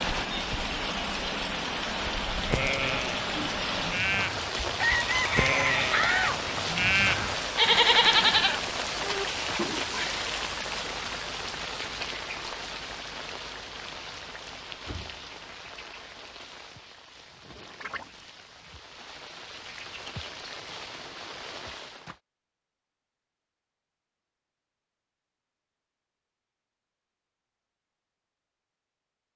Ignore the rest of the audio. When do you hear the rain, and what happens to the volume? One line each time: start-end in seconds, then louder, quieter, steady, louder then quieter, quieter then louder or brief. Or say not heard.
0.0-22.2 quieter.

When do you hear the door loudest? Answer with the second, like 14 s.
6 s.